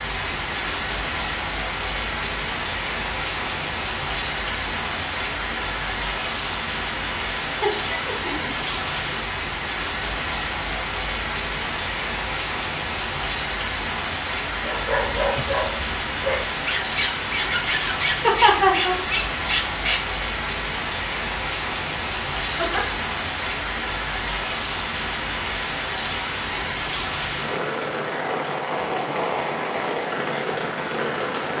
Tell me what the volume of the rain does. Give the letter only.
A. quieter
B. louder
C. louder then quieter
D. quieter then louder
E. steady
E.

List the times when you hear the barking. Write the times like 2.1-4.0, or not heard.
14.6-20.0.